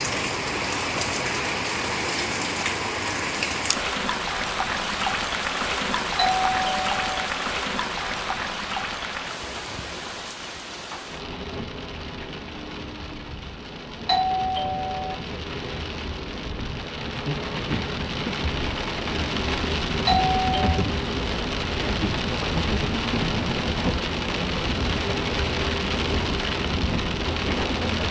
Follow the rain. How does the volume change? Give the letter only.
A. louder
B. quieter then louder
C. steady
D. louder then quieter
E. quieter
B.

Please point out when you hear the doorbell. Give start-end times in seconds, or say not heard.
6.2-7.2, 14.1-15.2, 20.1-20.8.